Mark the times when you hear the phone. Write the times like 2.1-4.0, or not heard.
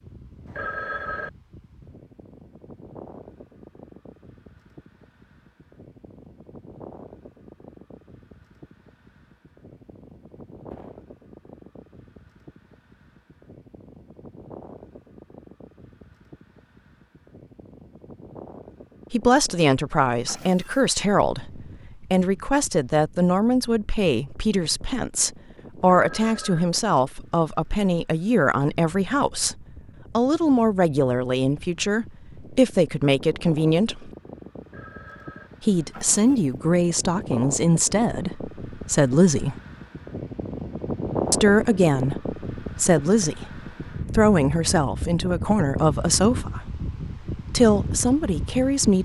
0.5-1.3, 26.0-26.6, 34.6-35.5.